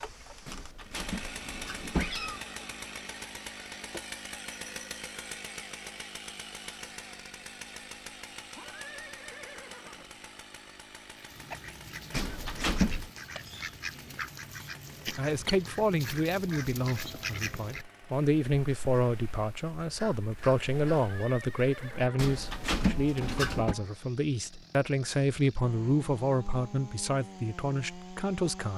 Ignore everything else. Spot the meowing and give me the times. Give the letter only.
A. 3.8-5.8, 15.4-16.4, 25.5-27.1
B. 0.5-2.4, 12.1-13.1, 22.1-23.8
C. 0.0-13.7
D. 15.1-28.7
B.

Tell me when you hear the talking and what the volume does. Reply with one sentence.
The talking can be heard from 15.1 to 28.7 s, at a steady volume.